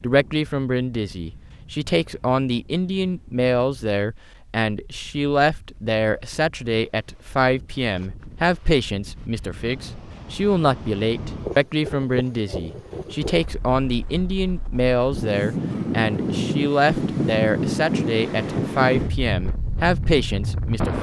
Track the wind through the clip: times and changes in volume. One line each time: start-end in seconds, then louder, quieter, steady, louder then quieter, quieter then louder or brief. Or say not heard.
0.0-20.9 louder.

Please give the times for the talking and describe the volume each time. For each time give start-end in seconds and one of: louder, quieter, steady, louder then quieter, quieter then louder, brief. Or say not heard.
0.0-20.9 steady.